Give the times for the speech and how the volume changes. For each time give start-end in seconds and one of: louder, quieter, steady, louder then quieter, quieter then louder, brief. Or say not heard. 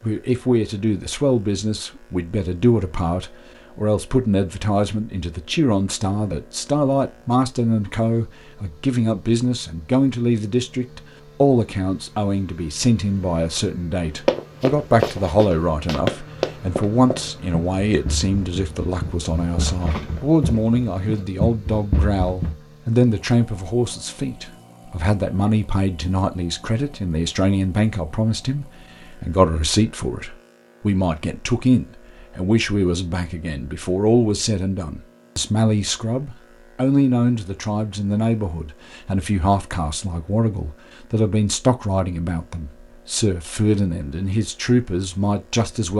0.0-45.9 steady.